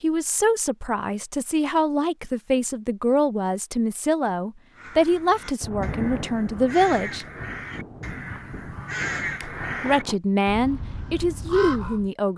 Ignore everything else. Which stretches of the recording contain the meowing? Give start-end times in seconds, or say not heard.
not heard.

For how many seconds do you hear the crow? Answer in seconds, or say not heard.
7 s.